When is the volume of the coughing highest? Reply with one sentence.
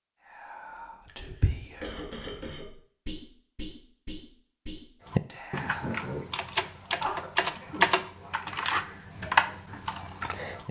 The volume of the coughing peaks at 7 seconds.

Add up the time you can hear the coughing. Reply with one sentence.
You can hear the coughing for 2 seconds altogether.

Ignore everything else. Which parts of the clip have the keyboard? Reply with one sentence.
The keyboard can be heard from 5.0 to 10.6 s.